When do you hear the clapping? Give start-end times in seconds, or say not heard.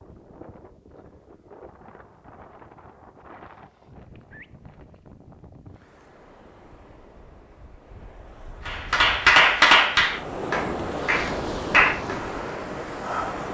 8.7-12.2.